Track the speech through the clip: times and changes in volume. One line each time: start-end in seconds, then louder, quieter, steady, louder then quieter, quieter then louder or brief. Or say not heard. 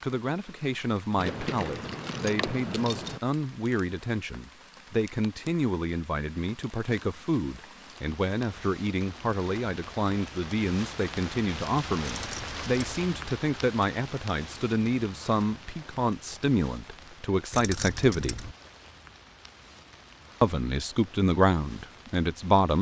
0.0-18.4 steady
20.4-22.7 brief.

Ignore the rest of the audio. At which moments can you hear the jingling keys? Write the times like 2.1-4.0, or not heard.
1.1-3.2, 12.1-13.1, 17.5-18.5.